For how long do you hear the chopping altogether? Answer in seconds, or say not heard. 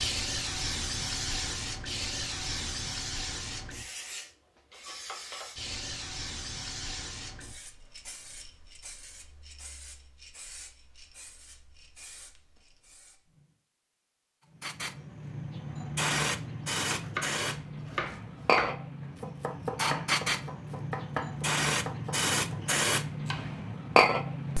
7 s.